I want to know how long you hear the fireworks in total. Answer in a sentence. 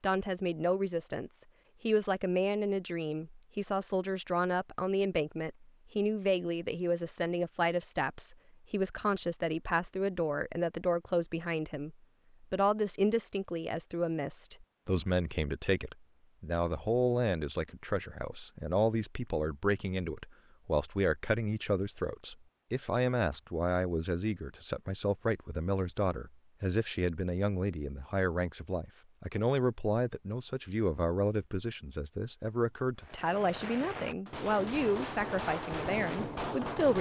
The fireworks can be heard for 4 seconds in total.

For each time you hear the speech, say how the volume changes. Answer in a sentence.
You can hear the speech from 0.0 to 36.9 s, at a steady volume.